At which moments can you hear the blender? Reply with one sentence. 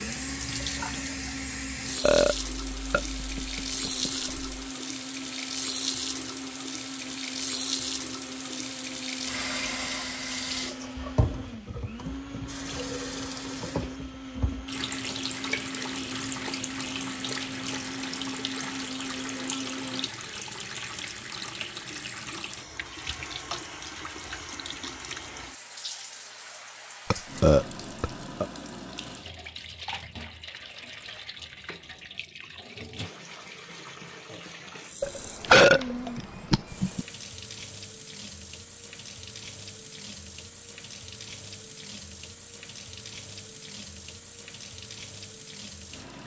The blender can be heard from 0.0 to 20.1 s.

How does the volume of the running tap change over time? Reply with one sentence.
The loudness of the running tap goes down.